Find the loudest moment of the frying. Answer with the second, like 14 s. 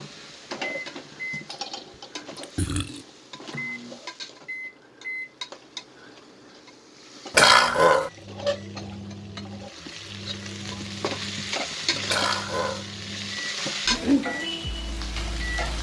14 s.